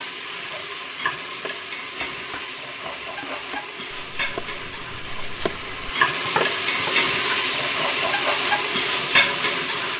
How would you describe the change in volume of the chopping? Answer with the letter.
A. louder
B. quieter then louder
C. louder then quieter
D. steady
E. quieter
A.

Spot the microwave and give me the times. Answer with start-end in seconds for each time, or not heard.
not heard.